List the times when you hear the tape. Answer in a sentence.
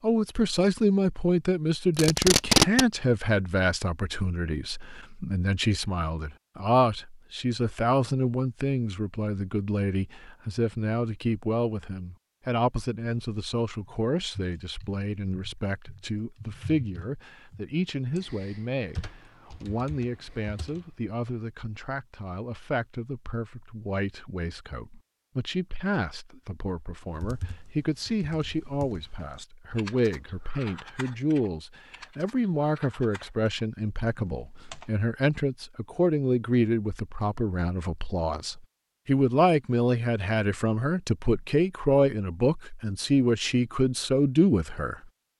The tape can be heard from 1.9 to 2.9 s.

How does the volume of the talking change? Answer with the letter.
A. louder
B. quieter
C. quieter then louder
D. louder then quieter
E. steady
C.